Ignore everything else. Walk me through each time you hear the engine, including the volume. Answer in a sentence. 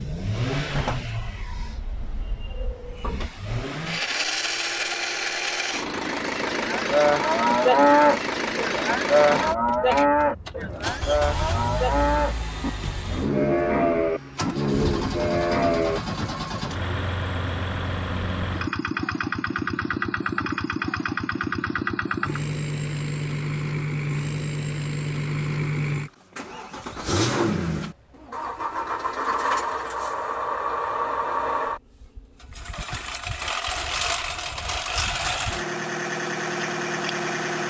You can hear the engine from 0.0 to 37.6 s, at a steady volume.